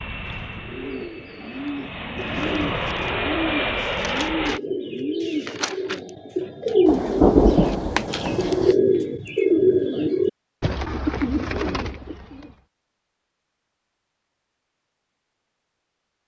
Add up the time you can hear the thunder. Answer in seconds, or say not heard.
2 s.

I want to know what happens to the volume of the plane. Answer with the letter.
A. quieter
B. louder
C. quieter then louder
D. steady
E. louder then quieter
B.